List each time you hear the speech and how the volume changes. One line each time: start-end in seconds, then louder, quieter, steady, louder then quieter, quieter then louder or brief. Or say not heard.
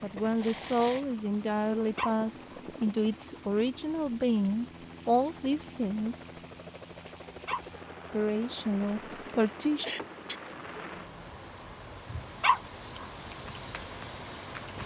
0.0-6.3 steady
8.1-9.8 brief.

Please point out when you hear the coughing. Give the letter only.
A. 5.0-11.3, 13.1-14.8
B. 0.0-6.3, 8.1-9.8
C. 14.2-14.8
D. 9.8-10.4
D.